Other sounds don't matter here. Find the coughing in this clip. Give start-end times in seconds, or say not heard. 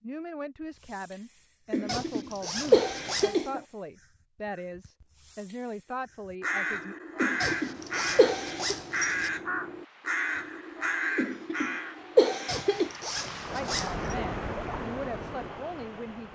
1.7-3.6, 7.2-8.8, 11.2-12.9.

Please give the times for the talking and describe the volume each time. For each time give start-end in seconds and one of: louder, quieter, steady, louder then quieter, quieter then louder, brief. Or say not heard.
0.0-7.0 steady
13.5-16.2 brief.